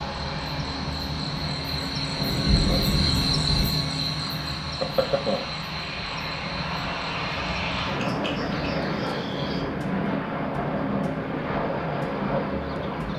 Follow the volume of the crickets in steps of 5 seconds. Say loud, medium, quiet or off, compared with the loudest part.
loud, medium, off.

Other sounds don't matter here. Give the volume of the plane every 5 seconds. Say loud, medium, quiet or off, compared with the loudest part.
medium, loud, loud.